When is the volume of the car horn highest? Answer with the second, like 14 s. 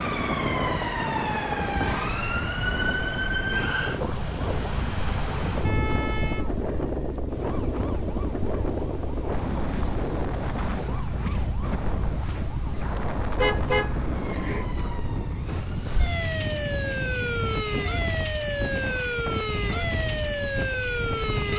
14 s.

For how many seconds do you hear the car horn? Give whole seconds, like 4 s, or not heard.
2 s.